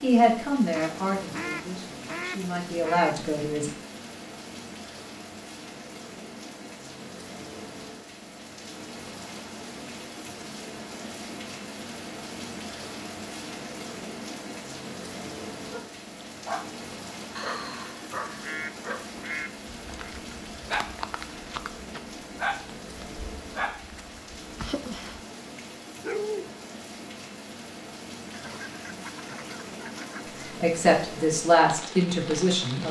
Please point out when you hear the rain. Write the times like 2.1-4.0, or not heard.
0.0-32.8.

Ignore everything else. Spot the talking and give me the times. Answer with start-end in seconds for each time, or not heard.
0.0-3.7, 30.6-32.8.